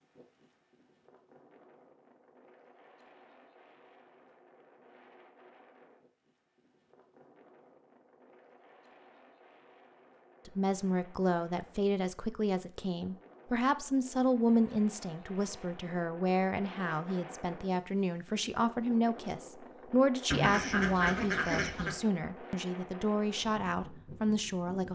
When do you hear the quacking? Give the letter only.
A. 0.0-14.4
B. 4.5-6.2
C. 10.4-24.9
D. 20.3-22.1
D.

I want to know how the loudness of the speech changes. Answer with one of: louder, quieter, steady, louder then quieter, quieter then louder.
steady.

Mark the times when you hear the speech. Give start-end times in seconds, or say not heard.
10.4-24.9.